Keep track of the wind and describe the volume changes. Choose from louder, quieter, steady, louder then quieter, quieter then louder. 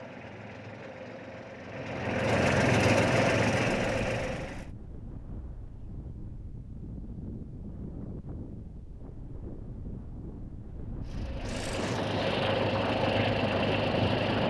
louder.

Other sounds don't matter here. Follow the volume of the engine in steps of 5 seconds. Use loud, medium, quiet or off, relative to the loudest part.
loud, off, loud.